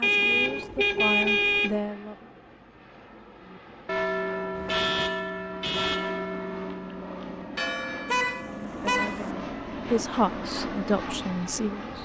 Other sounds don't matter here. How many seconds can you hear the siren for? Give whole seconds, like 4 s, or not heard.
not heard.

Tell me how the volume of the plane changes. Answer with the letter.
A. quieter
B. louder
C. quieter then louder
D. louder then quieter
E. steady
B.